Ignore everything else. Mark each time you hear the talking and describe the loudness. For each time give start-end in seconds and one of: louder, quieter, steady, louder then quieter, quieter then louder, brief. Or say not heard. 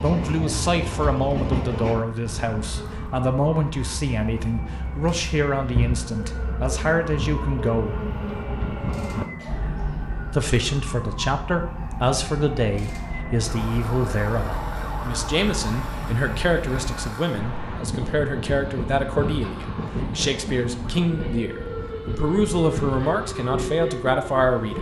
0.0-8.0 steady
10.3-24.7 steady.